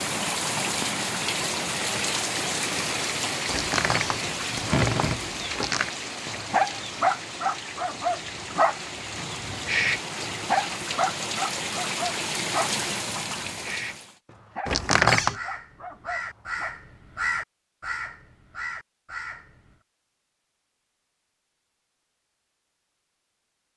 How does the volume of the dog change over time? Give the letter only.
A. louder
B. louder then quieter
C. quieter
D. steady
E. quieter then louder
C.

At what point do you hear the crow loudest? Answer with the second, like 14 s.
17 s.